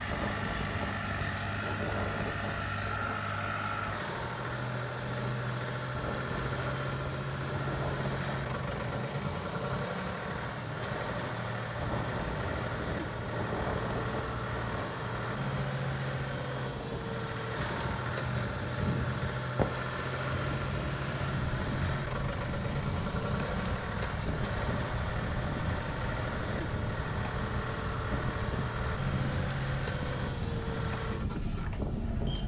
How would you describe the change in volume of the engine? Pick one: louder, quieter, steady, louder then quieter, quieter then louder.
steady.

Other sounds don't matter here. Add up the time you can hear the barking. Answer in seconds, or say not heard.
not heard.